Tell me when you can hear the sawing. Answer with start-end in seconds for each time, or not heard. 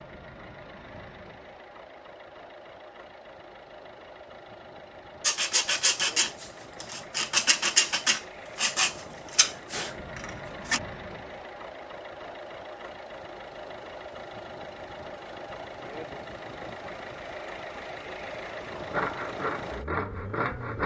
5.2-10.8, 18.9-20.8.